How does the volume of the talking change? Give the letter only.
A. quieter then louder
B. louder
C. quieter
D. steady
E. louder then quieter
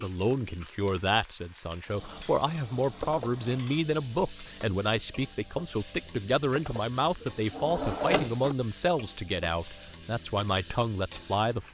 D.